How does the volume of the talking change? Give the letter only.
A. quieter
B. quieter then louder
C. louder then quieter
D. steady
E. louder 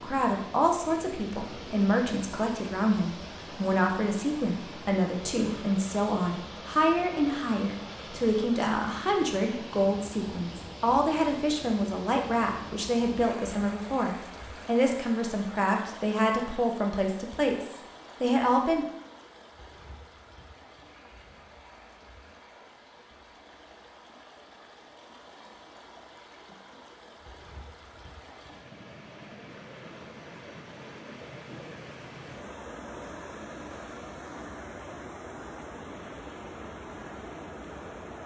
D.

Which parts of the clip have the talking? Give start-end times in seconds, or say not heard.
0.0-18.9.